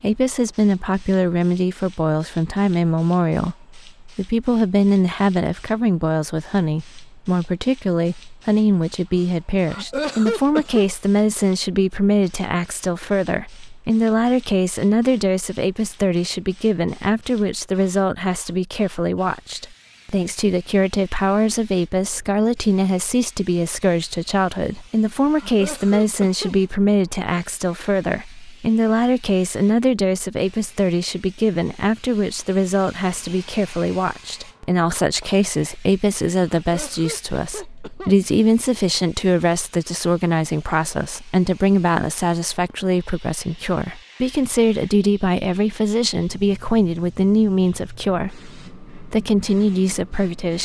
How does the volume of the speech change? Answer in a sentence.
The loudness of the speech stays about the same.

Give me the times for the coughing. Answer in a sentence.
The coughing can be heard from 9.7 to 10.8 s, from 25.4 to 26.6 s and from 36.5 to 38.1 s.